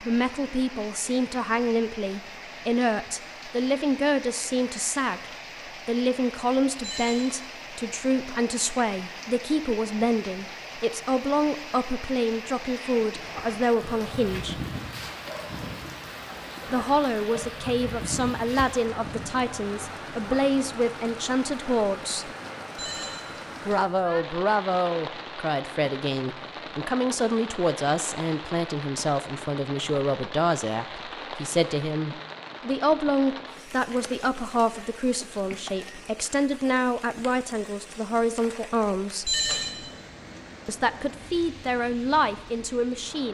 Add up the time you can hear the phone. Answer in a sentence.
You can hear the phone for 2 seconds altogether.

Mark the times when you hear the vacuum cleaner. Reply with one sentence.
The vacuum cleaner can't be heard in this clip.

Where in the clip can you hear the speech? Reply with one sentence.
The speech can be heard from 0.0 to 14.6 s, from 16.7 to 22.3 s, from 23.6 to 39.4 s and from 40.6 to 43.2 s.